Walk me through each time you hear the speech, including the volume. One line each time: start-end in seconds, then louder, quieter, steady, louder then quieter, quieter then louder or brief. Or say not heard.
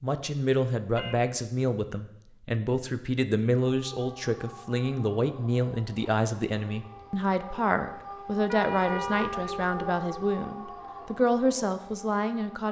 0.0-12.6 steady.